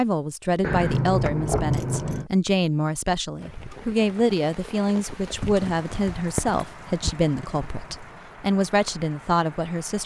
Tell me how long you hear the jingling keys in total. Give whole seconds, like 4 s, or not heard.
4 s.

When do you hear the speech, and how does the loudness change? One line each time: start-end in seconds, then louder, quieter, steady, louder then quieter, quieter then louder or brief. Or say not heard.
0.0-10.0 steady.